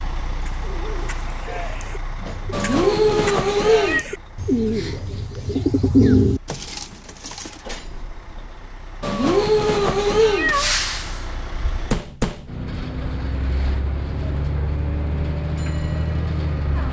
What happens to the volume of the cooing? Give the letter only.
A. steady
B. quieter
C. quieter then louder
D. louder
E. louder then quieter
D.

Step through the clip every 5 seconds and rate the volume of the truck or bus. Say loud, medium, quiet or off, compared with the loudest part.
medium, quiet, loud, loud.